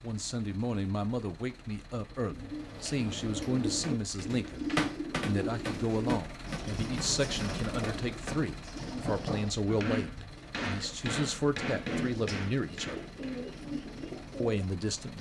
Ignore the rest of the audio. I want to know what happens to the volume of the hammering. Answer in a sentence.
The loudness of the hammering goes down, then up.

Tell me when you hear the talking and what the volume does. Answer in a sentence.
You can hear the talking from 0.0 to 13.0 s, at a steady volume; and briefly from 14.4 to 15.1 s.